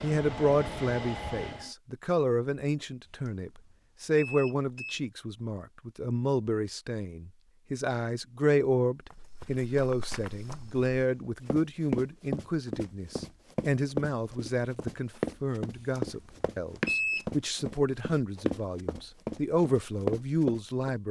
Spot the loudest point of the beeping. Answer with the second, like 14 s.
17 s.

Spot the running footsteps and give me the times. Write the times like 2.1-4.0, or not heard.
9.1-20.9.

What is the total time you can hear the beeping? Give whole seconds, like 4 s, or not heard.
4 s.